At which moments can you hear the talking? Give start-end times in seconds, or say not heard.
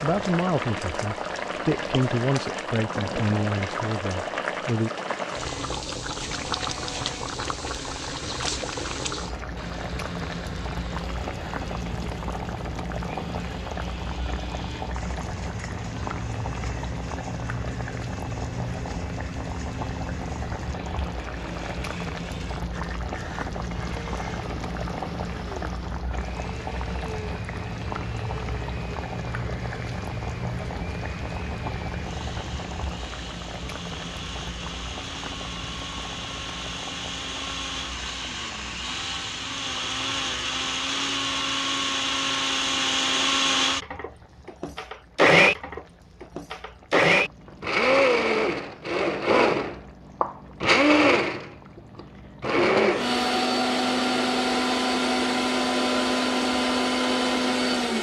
0.0-4.9.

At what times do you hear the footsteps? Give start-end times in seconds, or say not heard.
not heard.